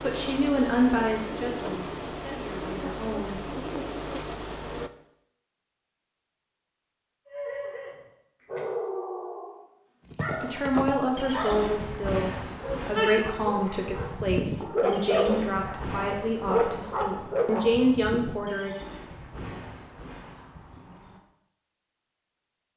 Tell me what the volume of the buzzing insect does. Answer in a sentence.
The loudness of the buzzing insect stays about the same.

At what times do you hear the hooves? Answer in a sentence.
You can hear the hooves from 10.1 to 21.2 s.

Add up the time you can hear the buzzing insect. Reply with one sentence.
The buzzing insect can be heard for 5 seconds in total.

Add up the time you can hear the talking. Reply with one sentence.
You can hear the talking for 12 seconds altogether.